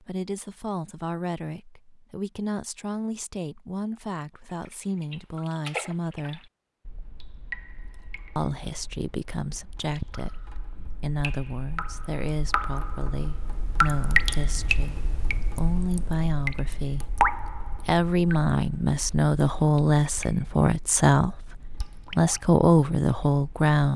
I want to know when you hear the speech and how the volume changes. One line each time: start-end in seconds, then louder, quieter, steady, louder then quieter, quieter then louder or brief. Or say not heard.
0.0-6.5 steady
8.3-23.9 louder.